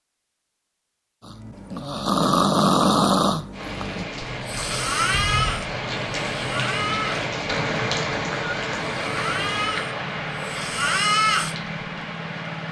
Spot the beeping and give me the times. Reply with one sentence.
The beeping can't be heard in this clip.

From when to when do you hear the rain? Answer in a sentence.
The rain can be heard from 3.5 to 12.6 s.